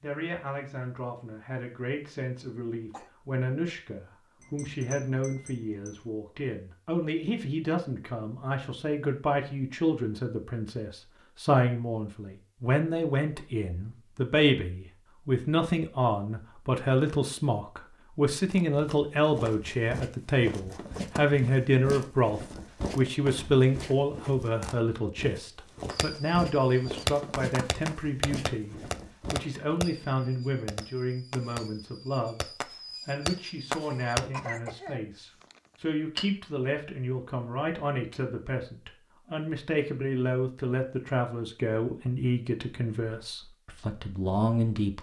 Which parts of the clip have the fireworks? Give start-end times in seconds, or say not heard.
25.9-34.2.